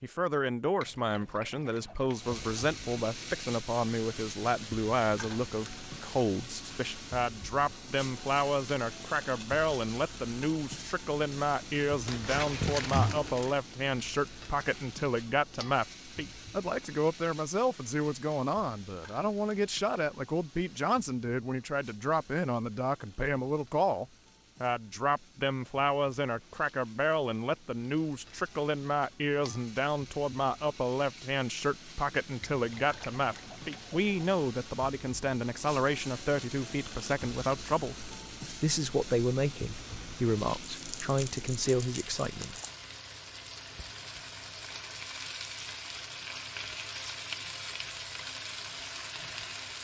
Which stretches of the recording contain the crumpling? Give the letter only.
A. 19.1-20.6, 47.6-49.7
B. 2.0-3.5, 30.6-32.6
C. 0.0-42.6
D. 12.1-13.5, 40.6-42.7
D.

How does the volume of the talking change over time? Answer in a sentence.
The loudness of the talking stays about the same.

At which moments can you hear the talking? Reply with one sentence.
The talking can be heard from 0.0 to 42.6 s.